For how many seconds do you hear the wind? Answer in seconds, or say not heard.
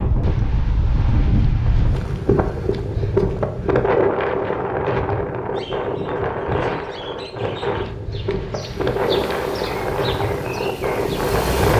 12 s.